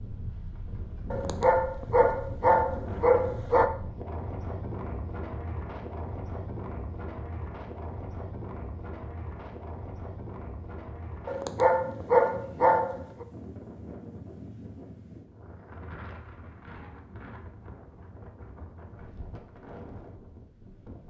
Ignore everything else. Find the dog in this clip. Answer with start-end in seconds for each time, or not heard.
1.1-3.7, 11.2-13.2.